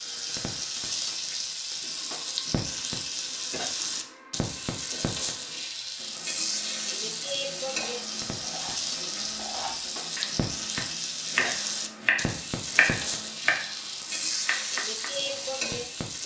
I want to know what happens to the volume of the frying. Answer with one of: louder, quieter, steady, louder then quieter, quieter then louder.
steady.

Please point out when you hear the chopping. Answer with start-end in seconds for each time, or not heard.
7.2-15.2.